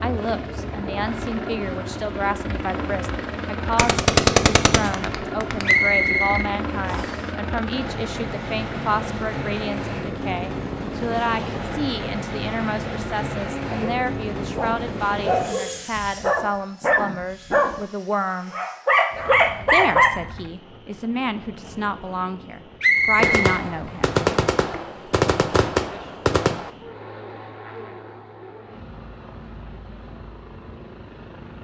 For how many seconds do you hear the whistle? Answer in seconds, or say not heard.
2 s.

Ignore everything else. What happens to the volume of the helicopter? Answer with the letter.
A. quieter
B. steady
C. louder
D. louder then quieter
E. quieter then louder
A.